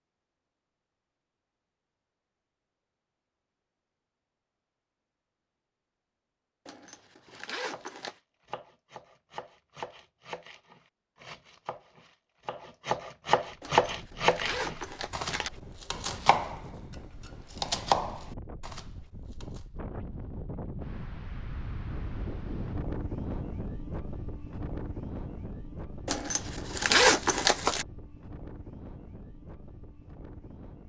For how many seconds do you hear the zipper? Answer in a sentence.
You can hear the zipper for 5 seconds altogether.